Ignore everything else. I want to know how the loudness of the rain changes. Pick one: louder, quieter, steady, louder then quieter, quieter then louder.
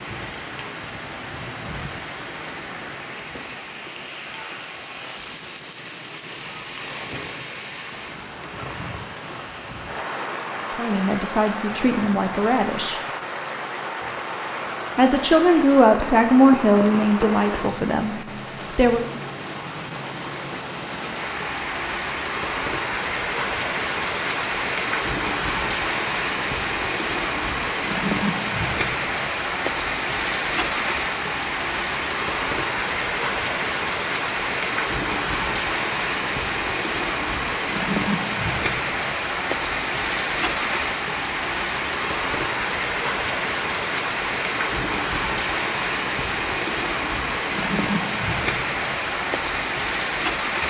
louder.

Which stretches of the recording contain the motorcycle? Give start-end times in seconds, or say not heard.
not heard.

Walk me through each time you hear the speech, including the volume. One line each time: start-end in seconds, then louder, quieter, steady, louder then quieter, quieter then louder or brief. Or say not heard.
10.8-13.0 brief
14.9-19.1 quieter.